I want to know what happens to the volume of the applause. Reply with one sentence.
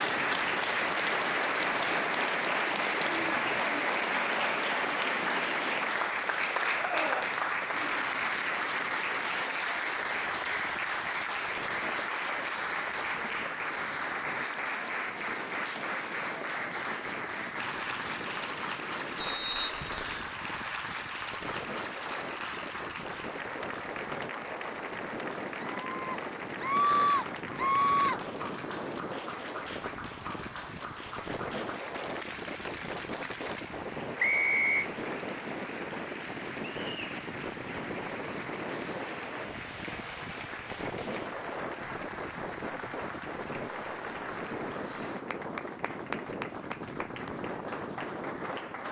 The loudness of the applause goes down.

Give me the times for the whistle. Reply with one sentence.
You can hear the whistle from 19.1 to 20.3 s and from 34.1 to 34.9 s.